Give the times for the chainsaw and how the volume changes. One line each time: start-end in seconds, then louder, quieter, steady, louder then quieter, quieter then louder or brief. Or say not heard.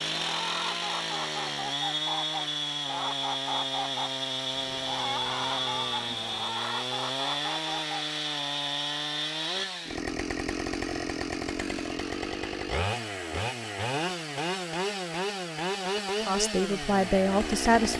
0.0-17.9 steady.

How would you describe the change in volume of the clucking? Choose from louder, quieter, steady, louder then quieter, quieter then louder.
steady.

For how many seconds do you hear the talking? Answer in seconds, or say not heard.
2 s.